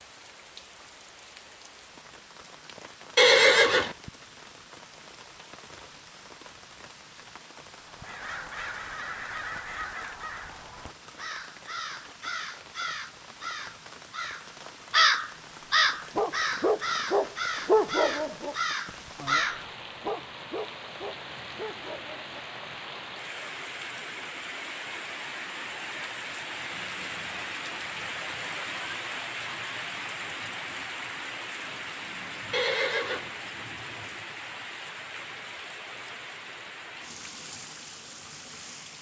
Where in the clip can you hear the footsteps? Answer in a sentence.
The footsteps can't be heard in this clip.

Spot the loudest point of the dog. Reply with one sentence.
The loudest moment of the dog is at 18 seconds.